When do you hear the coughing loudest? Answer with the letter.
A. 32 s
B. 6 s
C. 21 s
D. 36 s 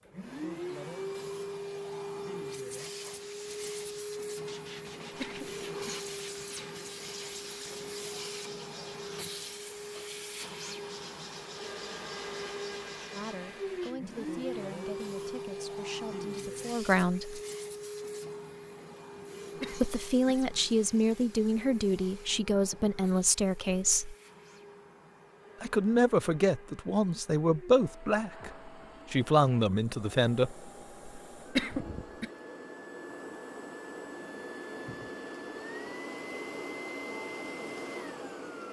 A.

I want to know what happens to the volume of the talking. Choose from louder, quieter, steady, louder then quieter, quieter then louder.
louder.